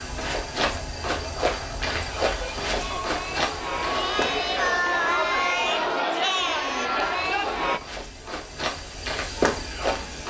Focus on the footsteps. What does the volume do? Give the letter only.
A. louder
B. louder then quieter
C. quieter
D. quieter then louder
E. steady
D.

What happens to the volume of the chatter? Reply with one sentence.
The loudness of the chatter goes up.